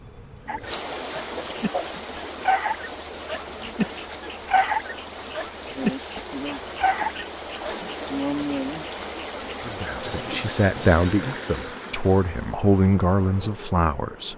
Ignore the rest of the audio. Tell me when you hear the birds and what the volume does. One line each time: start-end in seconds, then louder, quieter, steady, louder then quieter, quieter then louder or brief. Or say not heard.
not heard.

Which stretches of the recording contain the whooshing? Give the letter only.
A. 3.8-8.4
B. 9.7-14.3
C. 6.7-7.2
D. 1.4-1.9
D.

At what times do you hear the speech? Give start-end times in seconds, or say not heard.
9.7-14.3.